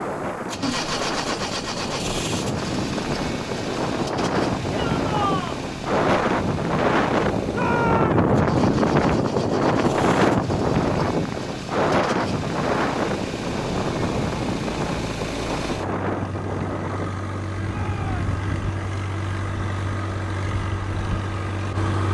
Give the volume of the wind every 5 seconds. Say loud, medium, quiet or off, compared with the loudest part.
medium, loud, loud, medium, quiet.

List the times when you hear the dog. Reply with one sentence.
The dog can't be heard in this clip.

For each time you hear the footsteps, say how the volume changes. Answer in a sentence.
The footsteps can't be heard in this clip.